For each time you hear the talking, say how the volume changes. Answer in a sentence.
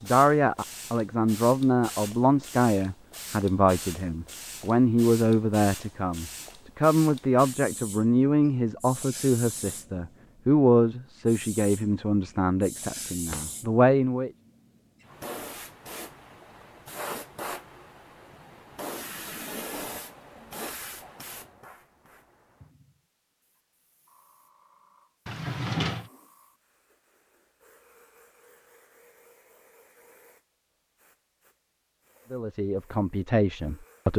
You can hear the talking from 0.0 to 14.3 s, at a steady volume; and briefly from 32.3 to 34.1 s.